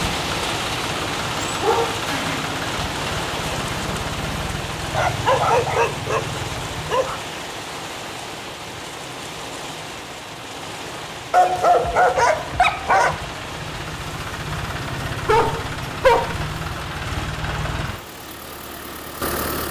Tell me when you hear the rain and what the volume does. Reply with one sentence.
The rain can be heard from 0.0 to 19.4 s, getting quieter.